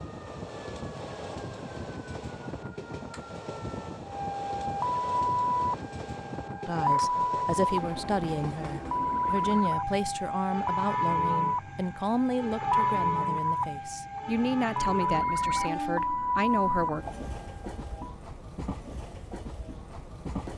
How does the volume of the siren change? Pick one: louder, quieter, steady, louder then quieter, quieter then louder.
louder.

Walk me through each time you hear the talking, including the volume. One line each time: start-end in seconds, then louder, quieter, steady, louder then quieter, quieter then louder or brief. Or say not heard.
6.7-17.1 steady.